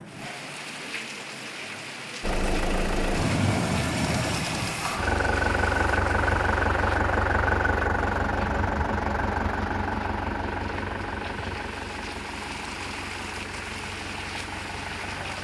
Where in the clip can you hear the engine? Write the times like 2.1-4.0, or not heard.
2.2-15.3.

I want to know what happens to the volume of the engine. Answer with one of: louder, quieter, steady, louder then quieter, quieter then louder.
quieter.